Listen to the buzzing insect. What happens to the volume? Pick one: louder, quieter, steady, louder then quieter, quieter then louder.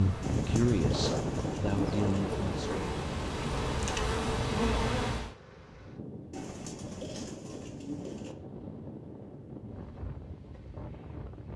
louder.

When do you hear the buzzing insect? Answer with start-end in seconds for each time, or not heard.
0.0-5.3.